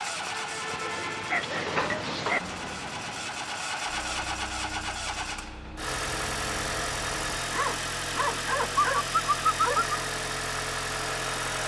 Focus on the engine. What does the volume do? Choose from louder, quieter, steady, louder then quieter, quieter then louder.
louder.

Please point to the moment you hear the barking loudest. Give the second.
10 s.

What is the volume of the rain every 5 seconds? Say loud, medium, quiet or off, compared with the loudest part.
loud, medium, off.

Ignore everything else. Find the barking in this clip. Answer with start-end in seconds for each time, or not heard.
1.3-2.4, 7.5-10.0.